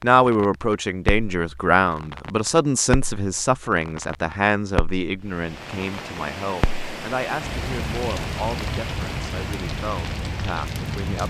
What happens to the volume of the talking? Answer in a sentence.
The loudness of the talking goes down.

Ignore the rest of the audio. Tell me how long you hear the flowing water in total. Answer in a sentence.
You can hear the flowing water for 6 seconds altogether.